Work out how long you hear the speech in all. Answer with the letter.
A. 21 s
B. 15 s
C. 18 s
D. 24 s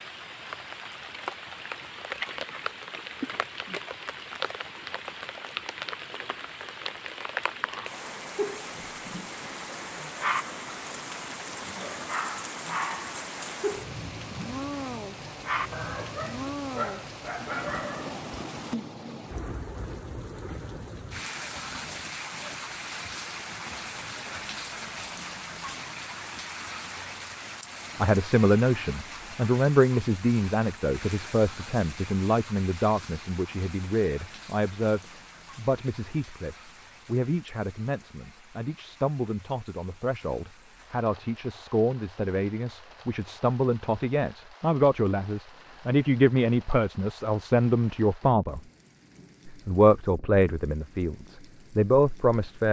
D.